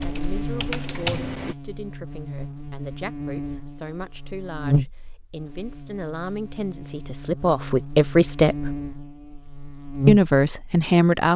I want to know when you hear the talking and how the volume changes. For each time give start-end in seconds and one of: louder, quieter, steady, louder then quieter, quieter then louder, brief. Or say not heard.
0.0-8.8 louder
10.1-11.3 brief.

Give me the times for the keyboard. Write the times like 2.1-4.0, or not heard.
0.0-1.6.